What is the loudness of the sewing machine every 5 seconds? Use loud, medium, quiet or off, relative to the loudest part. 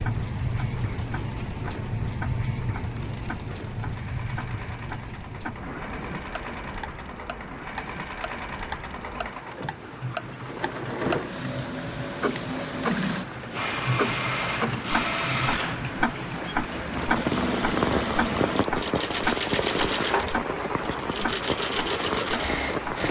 quiet, medium, loud, loud, loud.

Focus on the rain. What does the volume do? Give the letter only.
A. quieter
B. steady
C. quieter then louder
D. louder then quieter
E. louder
C.